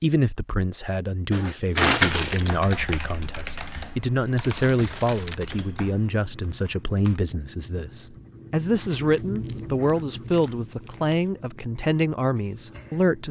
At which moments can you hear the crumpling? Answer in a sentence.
You can hear the crumpling from 1.3 to 2.4 s, from 4.6 to 5.4 s and from 8.9 to 11.2 s.